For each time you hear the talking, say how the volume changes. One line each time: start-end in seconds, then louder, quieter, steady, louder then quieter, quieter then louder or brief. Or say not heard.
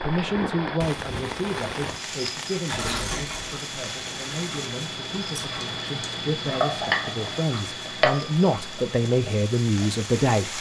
0.0-10.5 quieter then louder.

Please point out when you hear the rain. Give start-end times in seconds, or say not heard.
0.0-10.5.